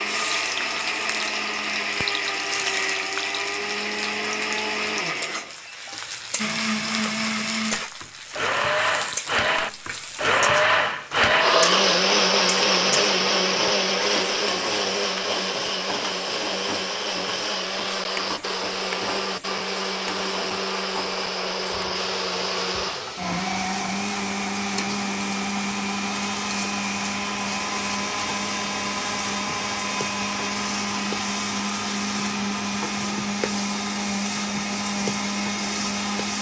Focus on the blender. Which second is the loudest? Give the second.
12 s.